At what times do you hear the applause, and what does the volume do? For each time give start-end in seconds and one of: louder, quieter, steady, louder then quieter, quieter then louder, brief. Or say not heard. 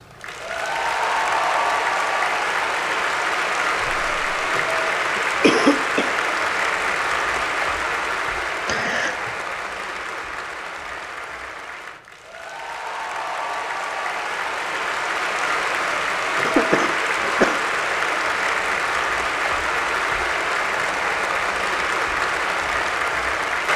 0.0-23.7 quieter then louder.